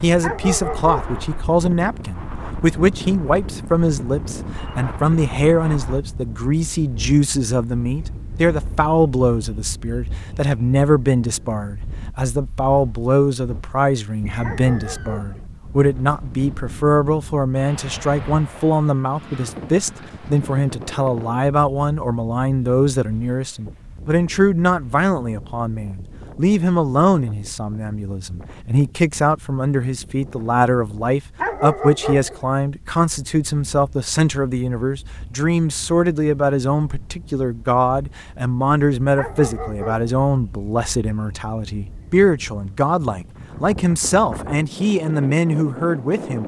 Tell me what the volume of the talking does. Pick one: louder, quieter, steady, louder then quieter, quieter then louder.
steady.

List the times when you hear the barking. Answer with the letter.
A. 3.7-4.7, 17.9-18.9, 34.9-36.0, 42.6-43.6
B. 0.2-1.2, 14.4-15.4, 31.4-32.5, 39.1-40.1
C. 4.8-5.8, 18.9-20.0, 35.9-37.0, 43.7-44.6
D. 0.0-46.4
B.